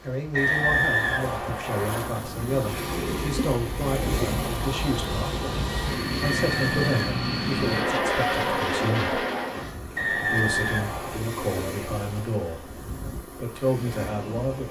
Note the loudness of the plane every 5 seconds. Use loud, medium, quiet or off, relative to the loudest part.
medium, loud, off.